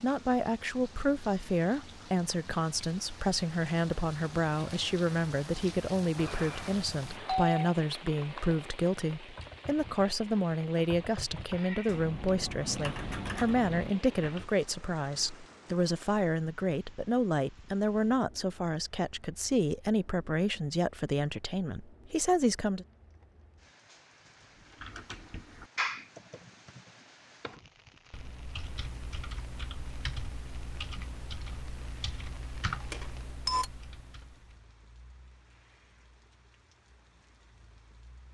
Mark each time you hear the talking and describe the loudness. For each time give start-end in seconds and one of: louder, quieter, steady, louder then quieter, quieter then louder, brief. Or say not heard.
0.0-22.9 steady.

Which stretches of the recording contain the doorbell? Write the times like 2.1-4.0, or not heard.
6.2-7.5, 32.9-33.7.